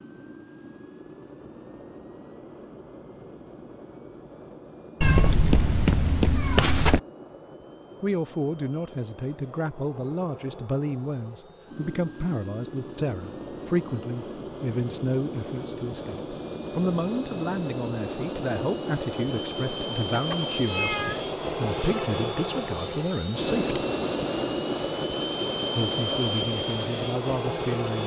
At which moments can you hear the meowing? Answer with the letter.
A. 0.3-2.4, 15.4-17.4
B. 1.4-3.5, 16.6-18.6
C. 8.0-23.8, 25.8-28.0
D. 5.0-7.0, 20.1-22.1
D.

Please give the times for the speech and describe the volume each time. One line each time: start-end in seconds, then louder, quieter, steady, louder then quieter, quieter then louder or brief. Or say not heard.
8.0-23.8 steady
25.8-28.0 brief.